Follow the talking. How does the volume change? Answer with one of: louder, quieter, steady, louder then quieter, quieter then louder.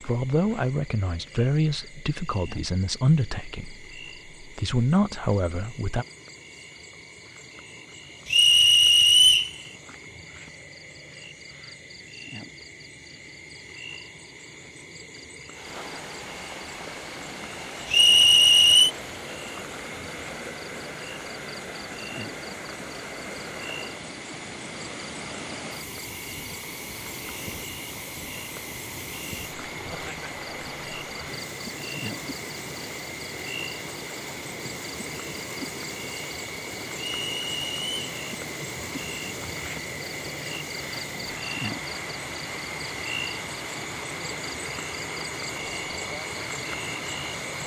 quieter then louder.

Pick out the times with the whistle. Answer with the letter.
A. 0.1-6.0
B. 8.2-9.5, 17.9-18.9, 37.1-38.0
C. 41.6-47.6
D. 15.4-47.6
B.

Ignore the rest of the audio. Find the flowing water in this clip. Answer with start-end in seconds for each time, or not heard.
15.4-47.6.